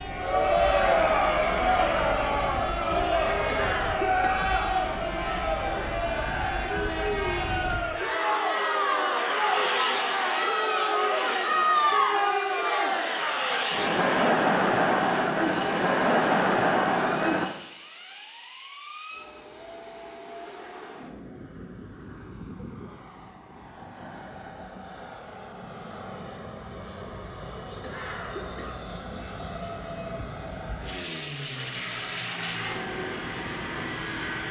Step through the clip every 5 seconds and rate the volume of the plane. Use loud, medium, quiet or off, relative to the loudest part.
loud, loud, loud, medium, medium, medium, loud.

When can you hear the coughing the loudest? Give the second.
4 s.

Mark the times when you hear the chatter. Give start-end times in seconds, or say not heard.
0.0-17.5.